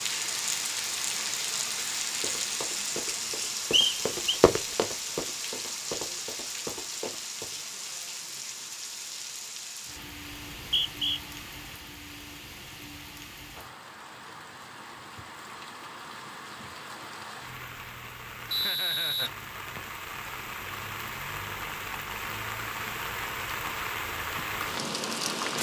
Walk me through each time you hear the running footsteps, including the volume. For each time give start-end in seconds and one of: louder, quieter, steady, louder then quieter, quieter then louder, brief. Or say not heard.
2.2-7.5 louder then quieter.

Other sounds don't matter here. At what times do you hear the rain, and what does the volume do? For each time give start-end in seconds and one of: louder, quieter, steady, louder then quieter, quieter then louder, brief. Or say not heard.
0.0-25.5 quieter then louder.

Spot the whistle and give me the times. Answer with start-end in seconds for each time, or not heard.
3.7-4.3, 10.3-11.2, 18.5-19.8.